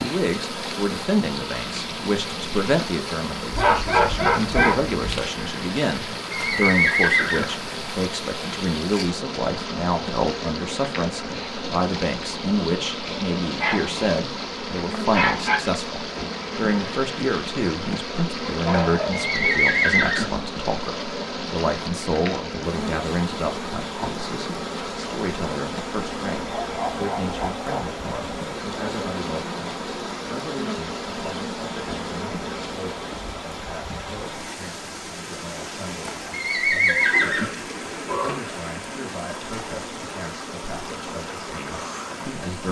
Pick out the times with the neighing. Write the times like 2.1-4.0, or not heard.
6.3-7.5, 19.1-20.3, 36.3-37.5.